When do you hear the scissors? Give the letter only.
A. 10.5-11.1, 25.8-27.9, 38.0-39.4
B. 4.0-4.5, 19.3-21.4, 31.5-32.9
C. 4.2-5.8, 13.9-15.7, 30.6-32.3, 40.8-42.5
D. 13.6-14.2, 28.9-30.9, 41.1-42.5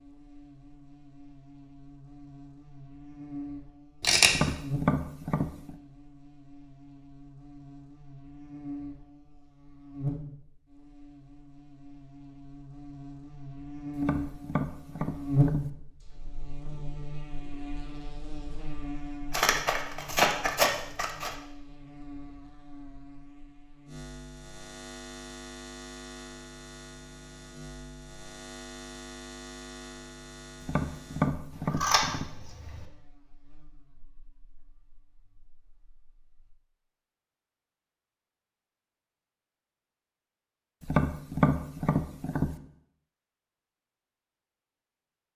B.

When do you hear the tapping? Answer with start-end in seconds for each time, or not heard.
4.2-5.8, 13.9-15.7, 30.6-32.3, 40.8-42.5.